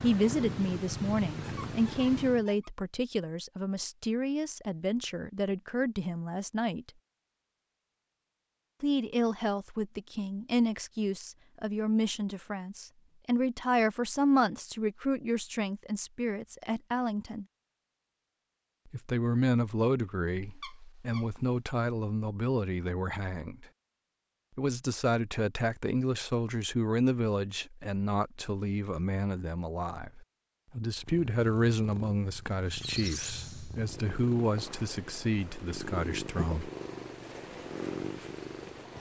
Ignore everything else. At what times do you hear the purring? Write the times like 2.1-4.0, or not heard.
0.0-2.5, 30.9-38.9.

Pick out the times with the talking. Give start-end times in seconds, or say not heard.
0.0-6.9, 8.8-17.4, 18.9-23.6, 24.6-36.7.